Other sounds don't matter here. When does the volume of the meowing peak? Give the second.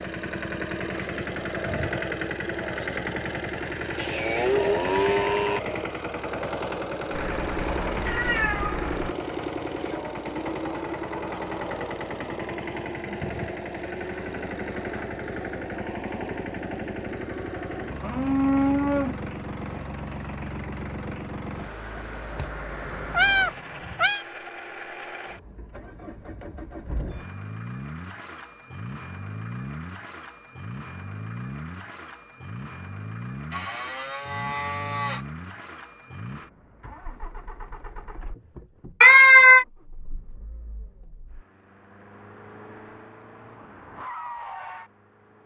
39 s.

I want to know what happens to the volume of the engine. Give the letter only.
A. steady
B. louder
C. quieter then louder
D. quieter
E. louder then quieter
D.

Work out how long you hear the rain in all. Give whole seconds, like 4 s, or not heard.
not heard.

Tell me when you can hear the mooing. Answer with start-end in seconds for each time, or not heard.
4.0-5.6, 18.0-19.1, 33.5-35.2.